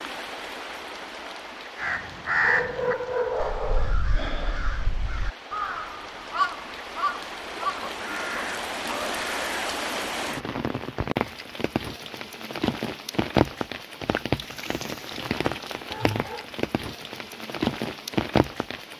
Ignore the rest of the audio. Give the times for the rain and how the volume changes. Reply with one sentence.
You can hear the rain from 0.0 to 18.9 s, getting louder.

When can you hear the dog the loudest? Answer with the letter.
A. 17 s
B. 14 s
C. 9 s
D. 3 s
D.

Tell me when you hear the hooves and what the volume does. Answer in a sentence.
You can't hear the hooves here.